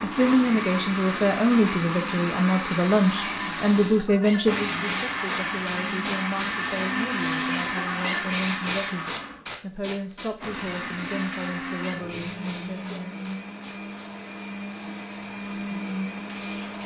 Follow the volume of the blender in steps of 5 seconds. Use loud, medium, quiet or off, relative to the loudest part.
loud, loud, medium, loud.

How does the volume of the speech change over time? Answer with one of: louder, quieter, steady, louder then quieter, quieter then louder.
quieter.